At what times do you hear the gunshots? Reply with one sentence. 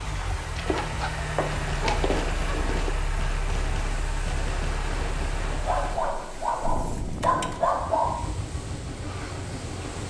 You can hear the gunshots from 1.5 to 6.0 s.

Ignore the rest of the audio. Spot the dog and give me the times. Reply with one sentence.
You can hear the dog from 0.6 to 3.0 s and from 5.7 to 8.3 s.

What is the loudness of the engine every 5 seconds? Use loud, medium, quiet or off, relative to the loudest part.
loud, medium.